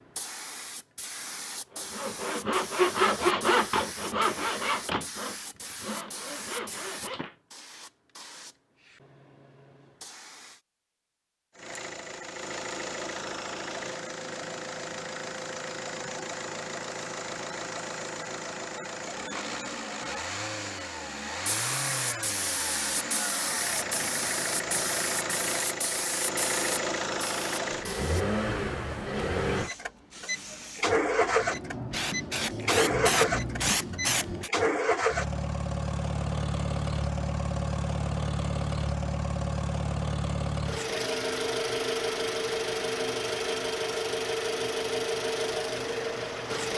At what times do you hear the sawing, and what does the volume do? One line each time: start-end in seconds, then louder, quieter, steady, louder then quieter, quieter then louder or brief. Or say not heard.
1.7-7.3 quieter.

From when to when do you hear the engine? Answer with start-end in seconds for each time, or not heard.
11.6-46.7.